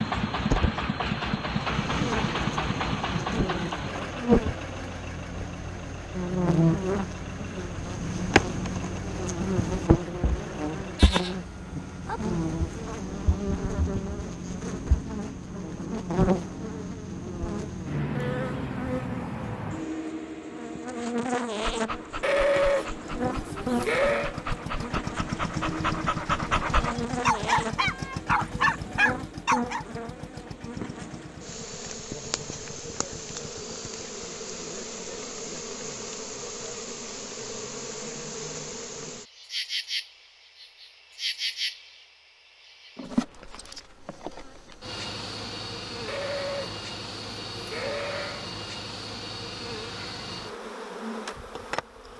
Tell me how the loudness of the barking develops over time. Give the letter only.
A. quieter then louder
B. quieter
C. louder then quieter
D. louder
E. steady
D.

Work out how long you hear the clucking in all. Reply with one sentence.
You can't hear the clucking here.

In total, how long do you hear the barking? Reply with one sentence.
You can hear the barking for 8 seconds altogether.